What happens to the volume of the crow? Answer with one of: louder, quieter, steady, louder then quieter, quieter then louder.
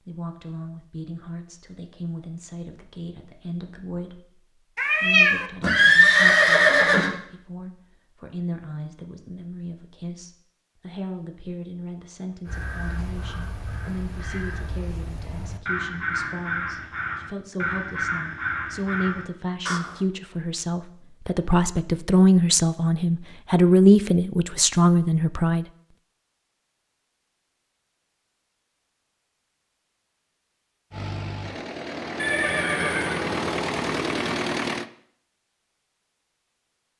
louder.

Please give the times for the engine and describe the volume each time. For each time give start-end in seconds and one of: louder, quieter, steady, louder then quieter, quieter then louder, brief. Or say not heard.
30.9-34.9 louder.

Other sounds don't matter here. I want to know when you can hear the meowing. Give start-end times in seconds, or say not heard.
4.8-5.5.